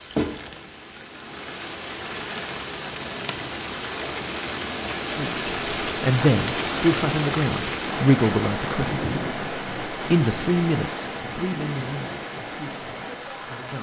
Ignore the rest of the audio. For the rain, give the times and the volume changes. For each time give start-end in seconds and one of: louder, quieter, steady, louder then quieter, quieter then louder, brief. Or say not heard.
0.0-13.7 louder then quieter.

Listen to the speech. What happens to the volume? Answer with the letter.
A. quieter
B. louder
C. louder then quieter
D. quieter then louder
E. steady
A.